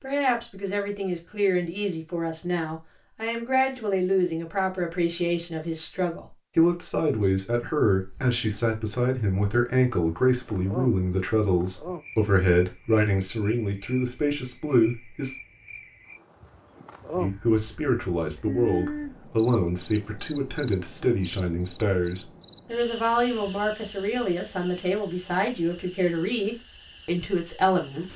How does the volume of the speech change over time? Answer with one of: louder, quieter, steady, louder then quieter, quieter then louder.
steady.